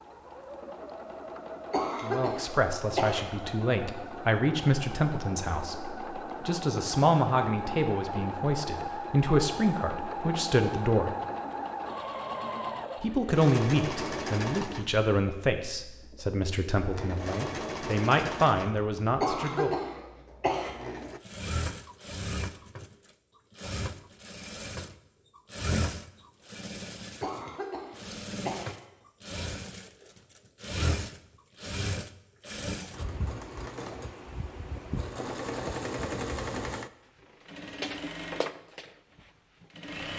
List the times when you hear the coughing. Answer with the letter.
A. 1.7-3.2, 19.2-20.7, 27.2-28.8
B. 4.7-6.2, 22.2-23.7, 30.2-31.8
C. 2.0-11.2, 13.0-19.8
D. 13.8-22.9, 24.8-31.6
A.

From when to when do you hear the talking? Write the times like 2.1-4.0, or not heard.
2.0-11.2, 13.0-19.8.